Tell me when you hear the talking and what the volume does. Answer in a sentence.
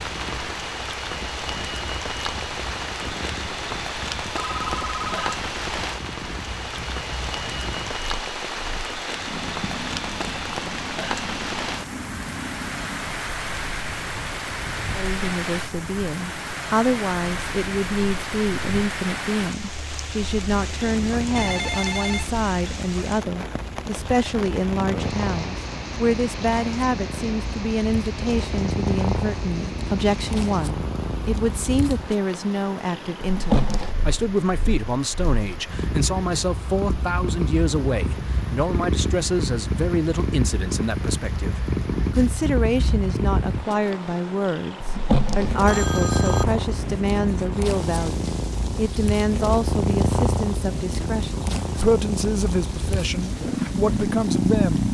The talking can be heard from 14.9 to 54.8 s, at a steady volume.